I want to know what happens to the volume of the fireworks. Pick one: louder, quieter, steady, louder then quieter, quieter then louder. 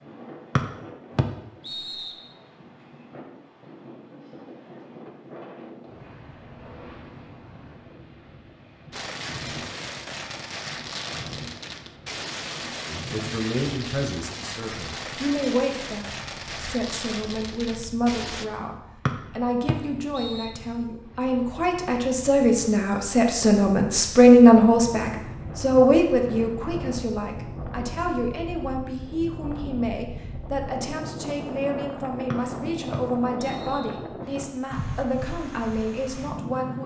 steady.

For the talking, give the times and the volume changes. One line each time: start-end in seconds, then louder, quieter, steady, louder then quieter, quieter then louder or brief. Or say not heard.
12.8-36.8 louder then quieter.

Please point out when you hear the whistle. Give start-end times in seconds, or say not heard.
0.6-2.2, 19.1-20.5, 32.3-34.0.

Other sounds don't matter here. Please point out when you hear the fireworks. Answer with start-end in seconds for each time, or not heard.
8.9-18.4.